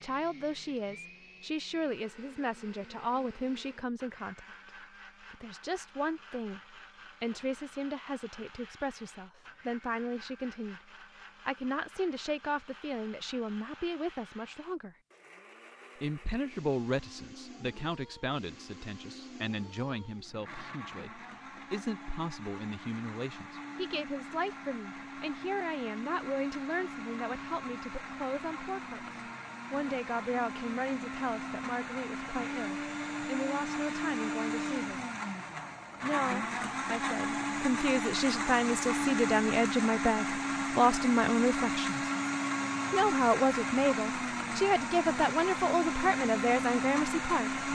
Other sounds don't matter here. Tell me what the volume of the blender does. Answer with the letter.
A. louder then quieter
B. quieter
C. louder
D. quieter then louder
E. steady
C.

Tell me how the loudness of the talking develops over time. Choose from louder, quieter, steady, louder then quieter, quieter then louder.
louder.